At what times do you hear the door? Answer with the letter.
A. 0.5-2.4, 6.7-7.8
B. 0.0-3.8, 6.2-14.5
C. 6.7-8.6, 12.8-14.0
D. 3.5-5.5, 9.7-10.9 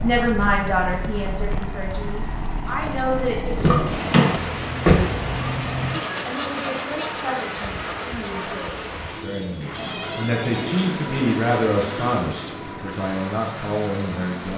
D.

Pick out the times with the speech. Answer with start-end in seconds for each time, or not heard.
0.0-3.8, 6.2-14.5.